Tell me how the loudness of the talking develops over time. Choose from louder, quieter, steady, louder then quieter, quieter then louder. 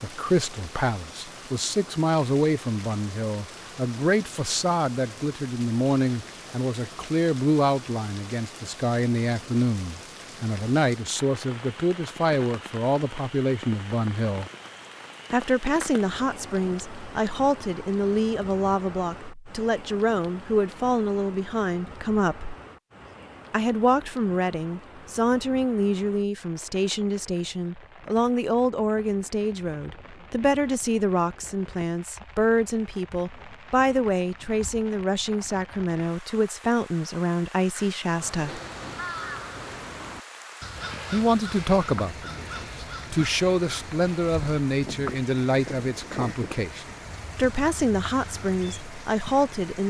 steady.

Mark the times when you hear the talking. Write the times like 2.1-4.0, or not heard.
0.0-14.5, 15.3-22.6, 23.5-38.6, 41.1-49.8.